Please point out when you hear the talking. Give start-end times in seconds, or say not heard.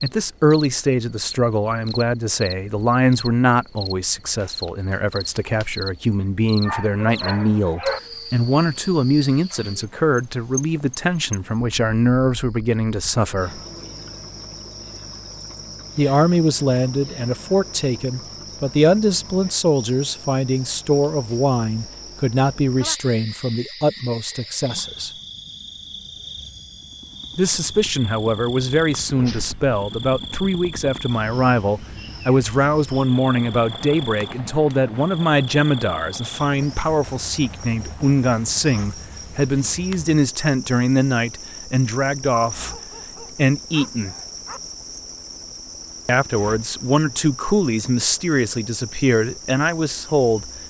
0.0-13.6, 15.9-25.1, 27.4-44.1, 46.0-50.5.